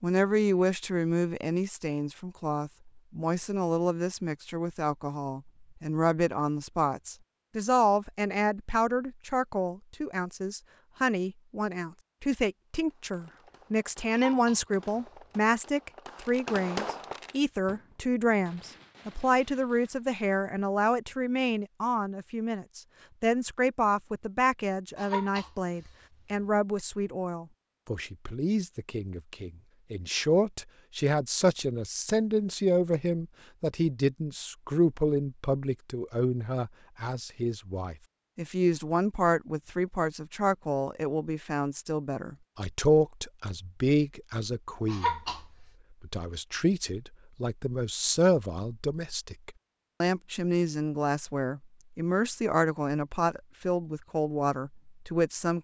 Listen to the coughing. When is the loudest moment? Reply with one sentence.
The volume of the coughing peaks at 45 seconds.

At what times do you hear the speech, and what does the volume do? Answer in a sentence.
You can hear the speech from 0.0 to 55.6 s, at a steady volume.